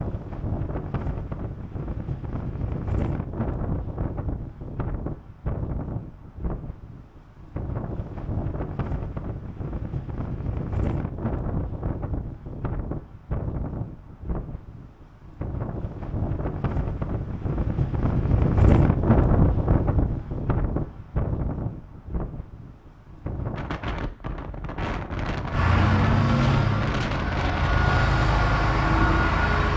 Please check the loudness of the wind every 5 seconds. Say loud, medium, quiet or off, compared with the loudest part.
medium, medium, medium, loud, medium, medium.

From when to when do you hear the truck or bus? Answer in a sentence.
The truck or bus can be heard from 25.5 to 29.7 s.